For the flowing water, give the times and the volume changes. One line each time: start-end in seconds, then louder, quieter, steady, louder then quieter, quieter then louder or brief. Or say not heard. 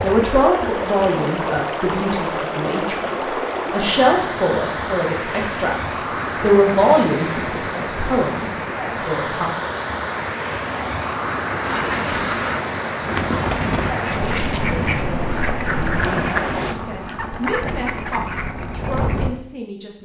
0.0-16.8 steady.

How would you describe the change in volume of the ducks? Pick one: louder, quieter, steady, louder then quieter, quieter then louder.
steady.